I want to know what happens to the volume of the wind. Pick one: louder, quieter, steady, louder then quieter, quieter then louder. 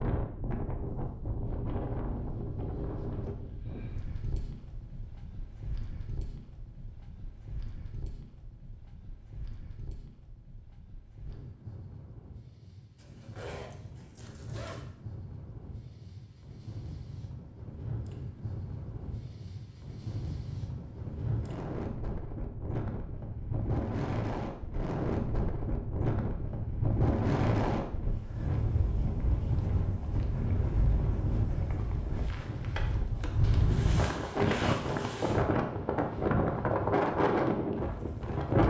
quieter then louder.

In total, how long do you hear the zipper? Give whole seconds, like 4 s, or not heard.
4 s.